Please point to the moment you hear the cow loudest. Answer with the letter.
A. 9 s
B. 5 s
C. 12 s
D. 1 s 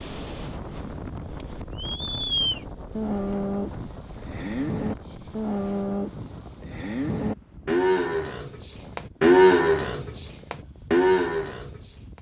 A.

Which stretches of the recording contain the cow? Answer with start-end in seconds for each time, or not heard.
1.8-12.0.